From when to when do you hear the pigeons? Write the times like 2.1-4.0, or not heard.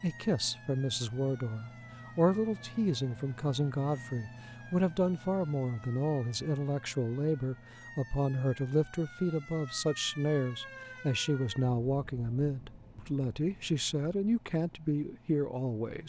not heard.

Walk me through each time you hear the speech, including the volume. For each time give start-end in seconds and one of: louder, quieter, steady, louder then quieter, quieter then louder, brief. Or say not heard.
0.0-16.0 steady.